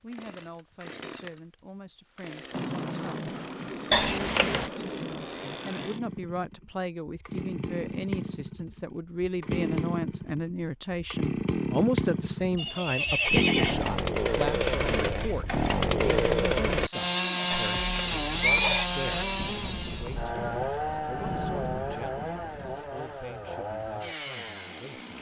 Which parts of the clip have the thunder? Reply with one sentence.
The thunder can be heard from 2.5 to 5.9 s and from 19.4 to 22.9 s.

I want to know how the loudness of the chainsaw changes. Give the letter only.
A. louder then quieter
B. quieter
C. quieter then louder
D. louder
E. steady
A.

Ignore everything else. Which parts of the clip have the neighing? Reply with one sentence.
The neighing can be heard from 3.9 to 4.7 s, from 12.6 to 13.8 s and from 17.5 to 18.9 s.